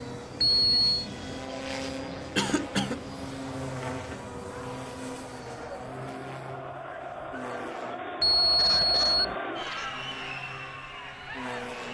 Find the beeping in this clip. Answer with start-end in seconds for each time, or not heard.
0.4-1.0, 8.2-9.3.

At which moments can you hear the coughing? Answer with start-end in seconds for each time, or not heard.
2.4-3.0, 8.6-9.9.